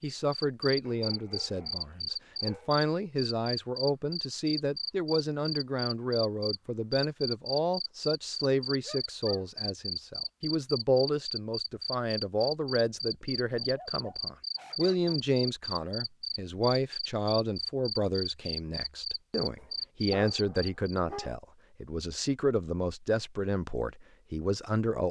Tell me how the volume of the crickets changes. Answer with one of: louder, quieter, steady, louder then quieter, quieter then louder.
steady.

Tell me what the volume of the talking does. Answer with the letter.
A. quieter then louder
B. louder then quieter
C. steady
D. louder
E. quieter
C.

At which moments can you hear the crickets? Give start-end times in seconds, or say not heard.
0.0-21.0.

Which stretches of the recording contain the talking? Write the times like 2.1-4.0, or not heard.
0.0-25.0.